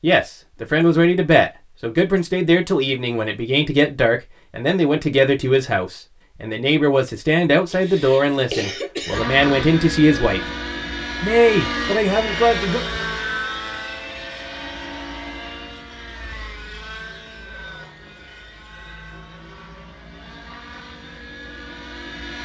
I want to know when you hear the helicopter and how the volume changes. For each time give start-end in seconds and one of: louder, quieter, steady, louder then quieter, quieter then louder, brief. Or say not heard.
9.1-22.4 quieter.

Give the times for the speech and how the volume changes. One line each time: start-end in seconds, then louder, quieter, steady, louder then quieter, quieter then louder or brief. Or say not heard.
0.0-10.4 steady
11.2-12.8 brief.